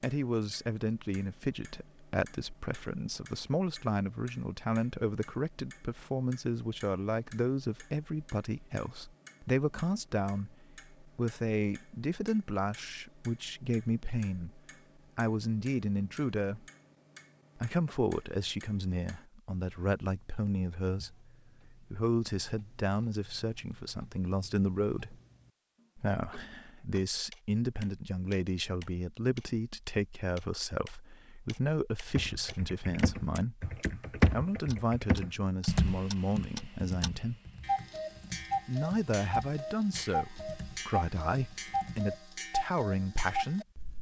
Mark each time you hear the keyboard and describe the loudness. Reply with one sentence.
You can hear the keyboard from 32.1 to 42.2 s, getting quieter.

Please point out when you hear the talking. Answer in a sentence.
You can hear the talking from 0.0 to 16.6 s, from 17.6 to 25.1 s, from 25.9 to 37.4 s and from 38.6 to 43.6 s.